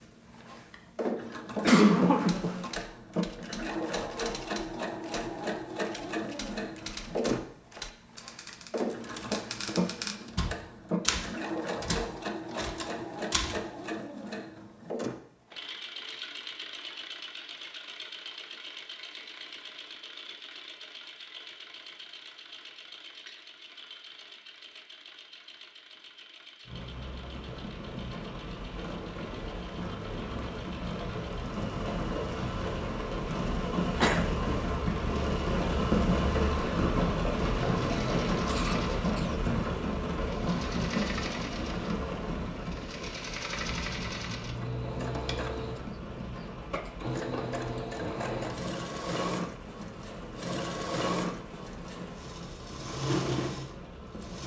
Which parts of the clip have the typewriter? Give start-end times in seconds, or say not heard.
2.1-13.7.